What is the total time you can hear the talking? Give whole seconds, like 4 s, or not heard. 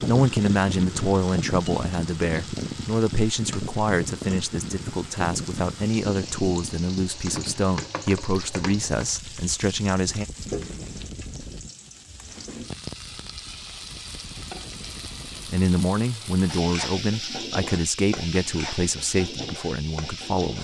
15 s.